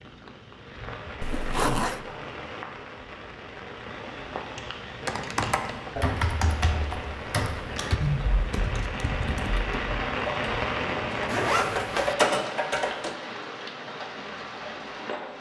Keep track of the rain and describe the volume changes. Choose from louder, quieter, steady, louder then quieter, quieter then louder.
louder then quieter.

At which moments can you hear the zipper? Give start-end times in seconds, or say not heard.
1.2-2.0, 11.2-12.2.